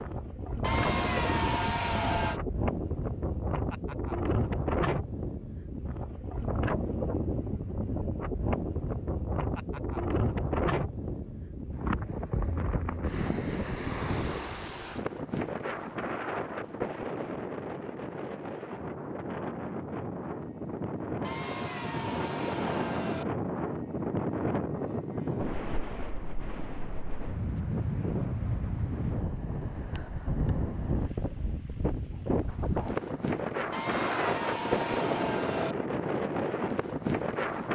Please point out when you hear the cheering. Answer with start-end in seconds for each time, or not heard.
0.6-2.4, 21.2-23.2, 33.7-35.8.